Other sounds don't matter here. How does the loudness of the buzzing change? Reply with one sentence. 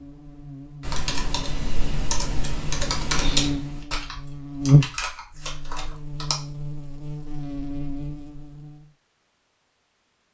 The volume of the buzzing goes up, then down.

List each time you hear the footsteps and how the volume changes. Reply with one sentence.
The footsteps can't be heard in this clip.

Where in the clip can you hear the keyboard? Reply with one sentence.
The keyboard can be heard from 0.8 to 6.3 s.